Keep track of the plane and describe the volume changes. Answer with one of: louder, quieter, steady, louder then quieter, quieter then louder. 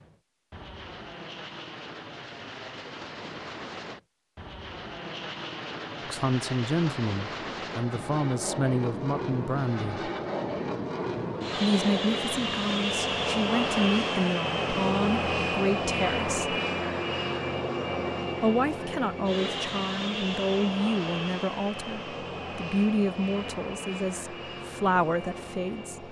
louder then quieter.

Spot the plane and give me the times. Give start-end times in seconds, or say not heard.
0.0-26.0.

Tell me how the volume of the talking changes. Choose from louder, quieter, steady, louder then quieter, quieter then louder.
steady.